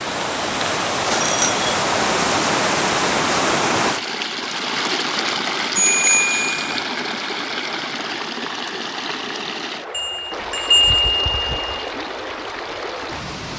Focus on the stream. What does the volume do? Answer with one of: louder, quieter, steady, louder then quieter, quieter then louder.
quieter.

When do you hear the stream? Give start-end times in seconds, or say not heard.
0.0-13.5.